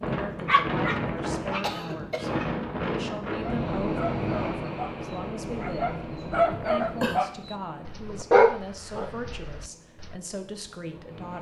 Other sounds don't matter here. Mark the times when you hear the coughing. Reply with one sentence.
You can hear the coughing from 1.6 to 2.4 s and from 6.5 to 7.2 s.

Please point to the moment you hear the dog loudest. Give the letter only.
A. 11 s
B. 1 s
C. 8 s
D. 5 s
C.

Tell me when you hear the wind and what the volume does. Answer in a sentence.
The wind can be heard from 0.0 to 11.3 s, getting quieter.